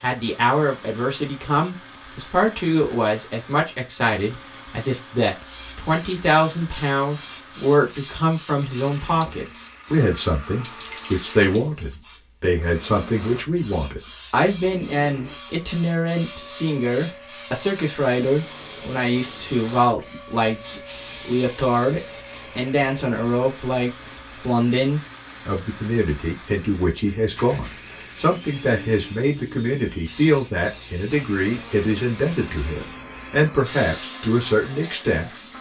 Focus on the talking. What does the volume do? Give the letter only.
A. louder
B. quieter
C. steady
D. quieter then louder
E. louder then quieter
C.